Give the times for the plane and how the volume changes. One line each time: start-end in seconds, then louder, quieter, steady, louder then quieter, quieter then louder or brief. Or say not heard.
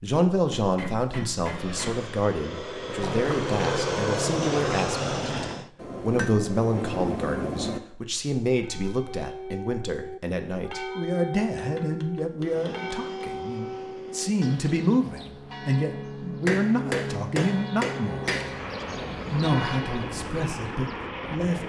1.4-5.7 louder
12.4-21.6 louder.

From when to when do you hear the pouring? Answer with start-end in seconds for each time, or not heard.
3.0-5.7.